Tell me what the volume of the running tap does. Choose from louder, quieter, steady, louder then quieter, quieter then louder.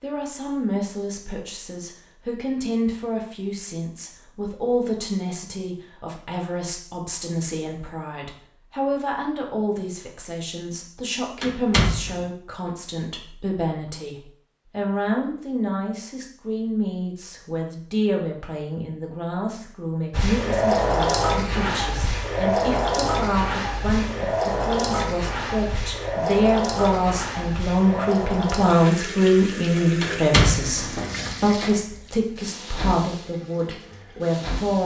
quieter.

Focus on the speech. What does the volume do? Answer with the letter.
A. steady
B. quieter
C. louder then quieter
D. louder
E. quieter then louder
D.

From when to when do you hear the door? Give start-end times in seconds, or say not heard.
11.4-12.2, 30.0-31.8.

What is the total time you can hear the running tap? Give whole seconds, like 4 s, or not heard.
15 s.